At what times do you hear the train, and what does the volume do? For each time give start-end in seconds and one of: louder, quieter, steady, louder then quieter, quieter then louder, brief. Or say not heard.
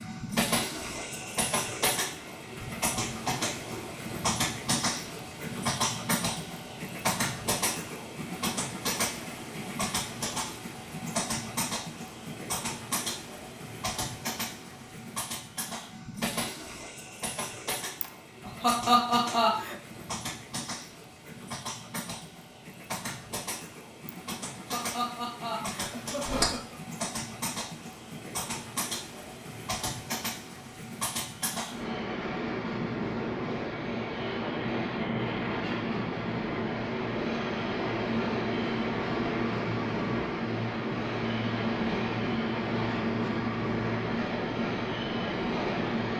0.0-46.1 quieter then louder.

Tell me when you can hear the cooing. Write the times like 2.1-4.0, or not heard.
not heard.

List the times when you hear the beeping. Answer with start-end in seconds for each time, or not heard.
25.8-26.5.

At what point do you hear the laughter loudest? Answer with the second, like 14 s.
19 s.